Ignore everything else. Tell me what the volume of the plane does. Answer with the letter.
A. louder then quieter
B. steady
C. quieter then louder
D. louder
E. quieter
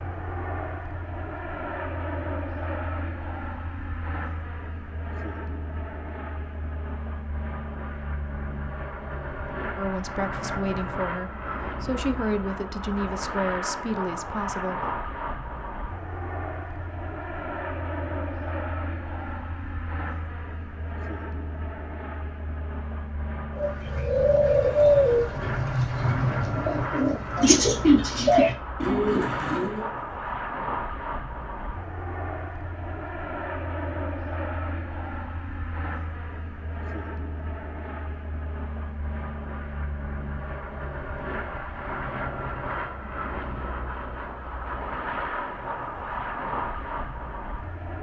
B.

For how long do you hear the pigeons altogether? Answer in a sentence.
The pigeons can be heard for 6 seconds in total.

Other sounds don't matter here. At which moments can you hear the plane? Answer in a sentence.
The plane can be heard from 0.0 to 47.9 s.